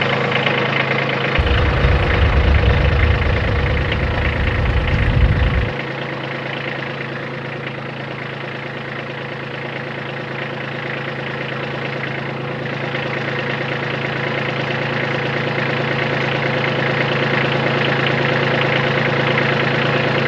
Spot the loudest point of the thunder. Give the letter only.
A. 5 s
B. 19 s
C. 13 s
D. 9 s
A.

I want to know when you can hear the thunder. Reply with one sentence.
The thunder can be heard from 1.4 to 5.8 s.